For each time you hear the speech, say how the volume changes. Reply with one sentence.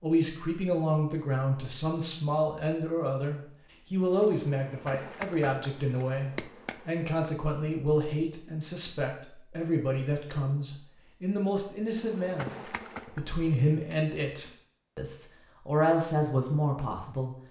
You can hear the speech from 0.0 to 17.4 s, at a steady volume.